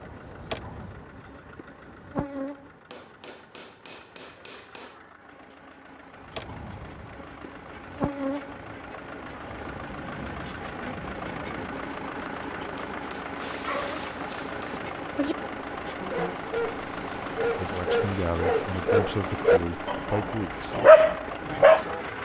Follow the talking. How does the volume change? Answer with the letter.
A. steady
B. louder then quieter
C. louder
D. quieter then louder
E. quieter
E.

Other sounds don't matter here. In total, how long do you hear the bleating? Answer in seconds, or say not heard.
not heard.